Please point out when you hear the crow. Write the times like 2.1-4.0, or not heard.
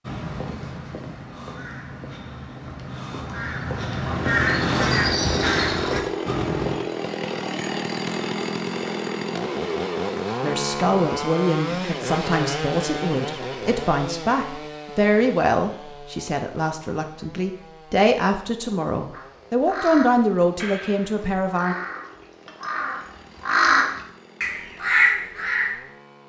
0.1-6.8, 19.1-25.9.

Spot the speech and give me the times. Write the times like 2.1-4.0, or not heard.
10.4-21.8.